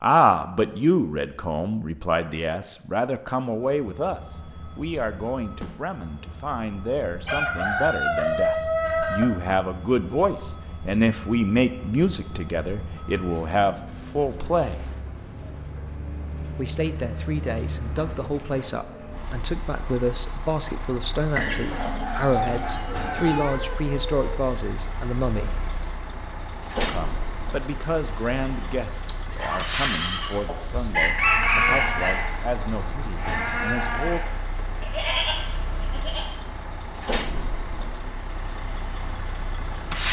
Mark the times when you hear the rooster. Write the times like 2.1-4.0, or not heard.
7.2-9.2, 21.4-23.4, 30.4-32.1.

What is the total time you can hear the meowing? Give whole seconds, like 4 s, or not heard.
3 s.